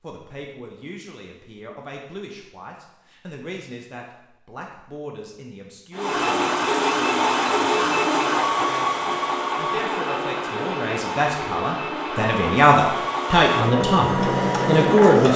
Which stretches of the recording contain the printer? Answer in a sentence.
The printer can be heard from 6.0 to 15.3 s.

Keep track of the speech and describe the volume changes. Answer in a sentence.
The loudness of the speech goes up.